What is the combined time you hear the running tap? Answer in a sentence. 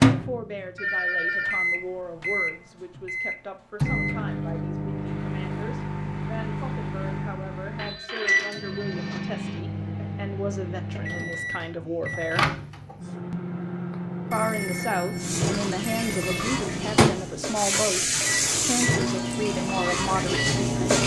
You can hear the running tap for 6 seconds altogether.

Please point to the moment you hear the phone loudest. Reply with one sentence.
The loudest moment of the phone is at 1 second.